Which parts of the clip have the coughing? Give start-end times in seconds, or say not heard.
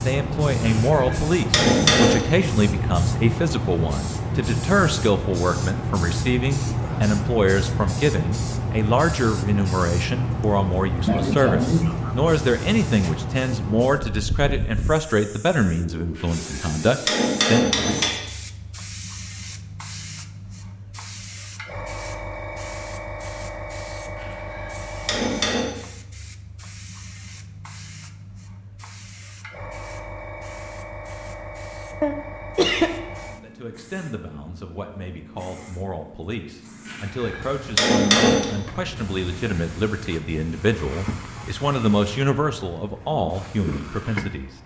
11.1-12.1, 32.0-33.0.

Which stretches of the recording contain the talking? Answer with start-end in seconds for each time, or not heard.
0.0-18.0, 33.4-44.6.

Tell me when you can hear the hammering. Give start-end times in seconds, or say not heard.
0.6-2.2, 16.1-18.1, 24.1-25.7, 36.9-38.5.